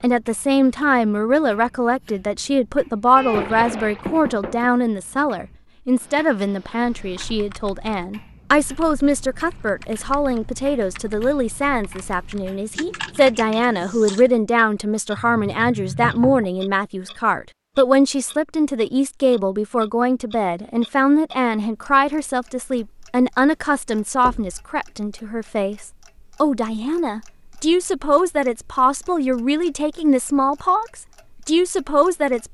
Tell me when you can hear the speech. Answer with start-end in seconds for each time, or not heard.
0.0-32.4.